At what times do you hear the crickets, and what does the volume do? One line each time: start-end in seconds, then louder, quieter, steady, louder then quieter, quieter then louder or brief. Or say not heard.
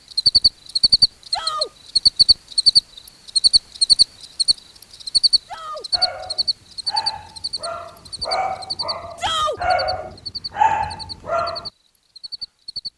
0.1-12.9 quieter.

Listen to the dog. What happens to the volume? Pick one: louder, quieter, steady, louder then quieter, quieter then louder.
louder.